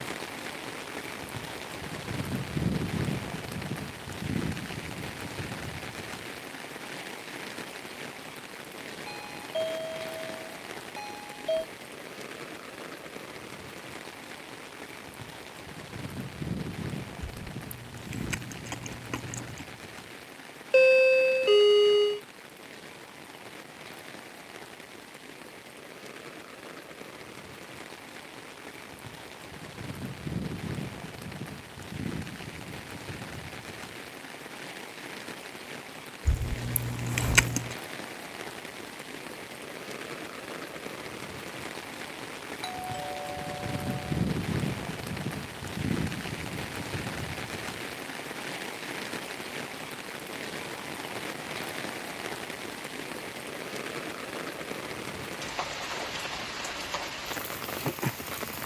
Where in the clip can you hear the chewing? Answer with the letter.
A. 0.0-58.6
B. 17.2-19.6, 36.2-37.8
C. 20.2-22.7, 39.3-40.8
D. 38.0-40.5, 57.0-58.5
B.